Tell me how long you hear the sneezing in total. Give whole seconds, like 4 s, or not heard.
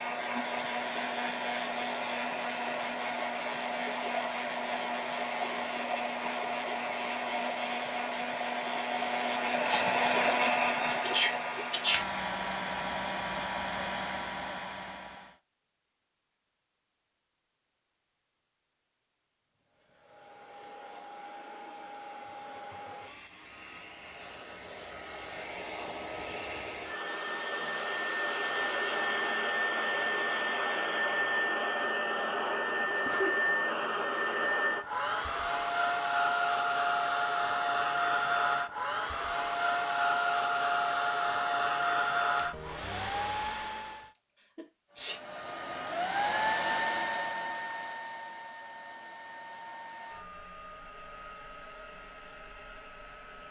2 s.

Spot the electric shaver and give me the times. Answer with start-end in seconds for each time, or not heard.
not heard.